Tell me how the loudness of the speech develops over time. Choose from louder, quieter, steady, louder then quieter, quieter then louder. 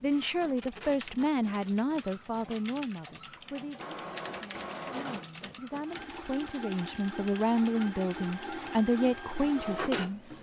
quieter then louder.